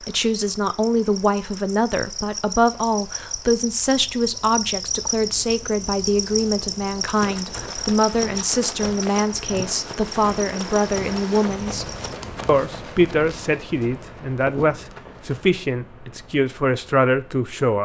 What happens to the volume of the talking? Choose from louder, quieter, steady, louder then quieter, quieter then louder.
steady.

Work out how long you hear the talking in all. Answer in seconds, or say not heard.
18 s.